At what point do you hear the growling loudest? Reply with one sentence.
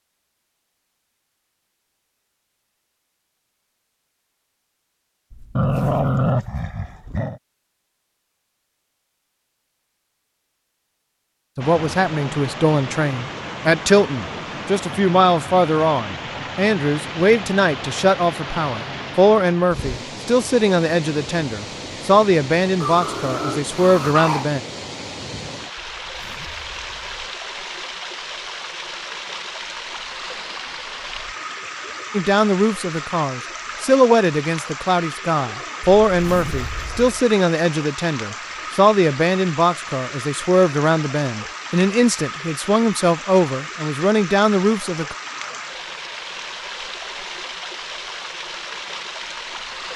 The loudest moment of the growling is at 6 seconds.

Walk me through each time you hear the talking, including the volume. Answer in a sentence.
You can hear the talking from 11.6 to 24.6 s, at a steady volume; and from 32.1 to 45.1 s, at a steady volume.